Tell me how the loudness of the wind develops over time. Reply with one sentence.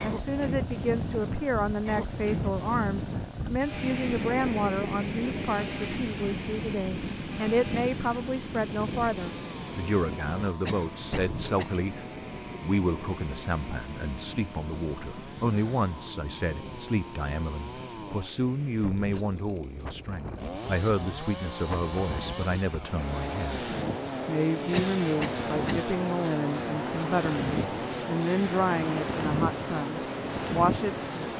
The loudness of the wind goes down, then up.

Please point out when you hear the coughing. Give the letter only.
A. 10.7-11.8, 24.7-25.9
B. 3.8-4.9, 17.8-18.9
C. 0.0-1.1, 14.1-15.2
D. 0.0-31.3
A.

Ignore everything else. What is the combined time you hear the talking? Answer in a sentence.
The talking can be heard for 31 seconds in total.